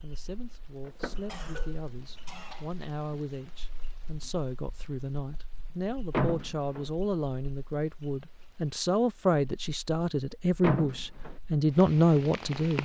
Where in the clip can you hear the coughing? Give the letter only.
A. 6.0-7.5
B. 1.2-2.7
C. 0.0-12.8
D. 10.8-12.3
B.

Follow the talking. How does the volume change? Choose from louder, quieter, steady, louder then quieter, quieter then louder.
louder.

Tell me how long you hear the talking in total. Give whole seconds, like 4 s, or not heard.
13 s.